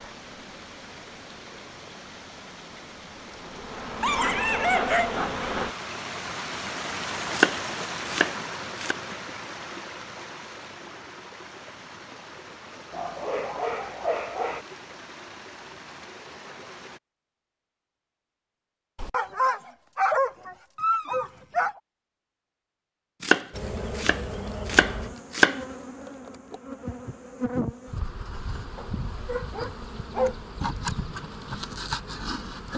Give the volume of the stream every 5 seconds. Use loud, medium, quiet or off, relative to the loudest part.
medium, loud, medium, medium, off, off, off.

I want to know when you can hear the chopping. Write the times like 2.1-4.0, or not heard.
7.3-8.9, 23.2-25.6.